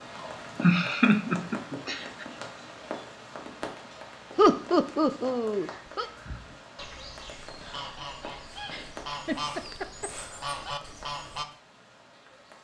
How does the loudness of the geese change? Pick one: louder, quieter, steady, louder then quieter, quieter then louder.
louder.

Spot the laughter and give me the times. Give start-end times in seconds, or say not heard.
0.6-2.2, 4.3-6.1, 8.7-10.1.